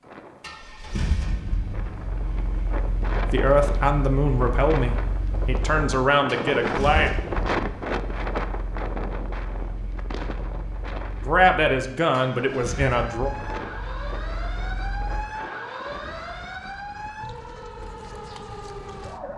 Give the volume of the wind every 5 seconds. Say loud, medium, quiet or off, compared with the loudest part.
medium, loud, medium, quiet.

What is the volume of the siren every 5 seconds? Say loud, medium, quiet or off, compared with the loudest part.
off, off, loud, loud.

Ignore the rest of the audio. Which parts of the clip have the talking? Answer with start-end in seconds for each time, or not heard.
3.3-7.1, 11.2-13.3.